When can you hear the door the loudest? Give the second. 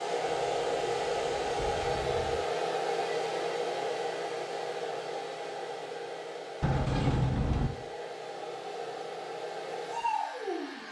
7 s.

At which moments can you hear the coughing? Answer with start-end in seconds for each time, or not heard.
not heard.